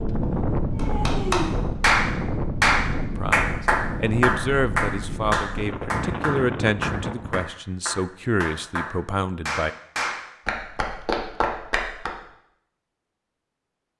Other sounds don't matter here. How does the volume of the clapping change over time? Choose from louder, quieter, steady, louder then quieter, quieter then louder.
quieter.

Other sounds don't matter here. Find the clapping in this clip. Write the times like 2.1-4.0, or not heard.
0.8-12.1.